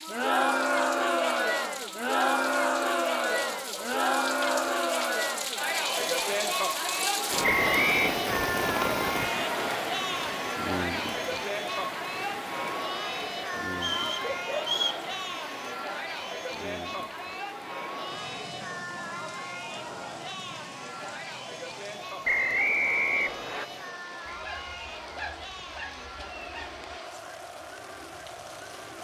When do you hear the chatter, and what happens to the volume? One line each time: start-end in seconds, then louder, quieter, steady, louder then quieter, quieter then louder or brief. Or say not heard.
0.0-28.9 quieter.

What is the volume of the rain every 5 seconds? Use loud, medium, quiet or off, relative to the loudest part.
medium, loud, medium, quiet, quiet, quiet.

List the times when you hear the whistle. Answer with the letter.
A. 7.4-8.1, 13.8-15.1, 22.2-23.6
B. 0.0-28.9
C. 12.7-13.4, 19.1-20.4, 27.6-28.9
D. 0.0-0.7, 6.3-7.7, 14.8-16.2
A.